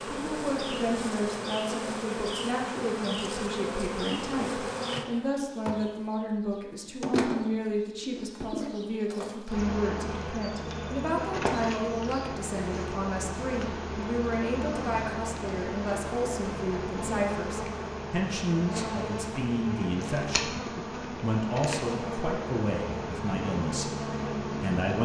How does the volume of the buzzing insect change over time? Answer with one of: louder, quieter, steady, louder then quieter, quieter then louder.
steady.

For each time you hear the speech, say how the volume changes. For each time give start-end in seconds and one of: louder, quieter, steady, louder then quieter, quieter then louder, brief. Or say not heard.
0.1-25.0 steady.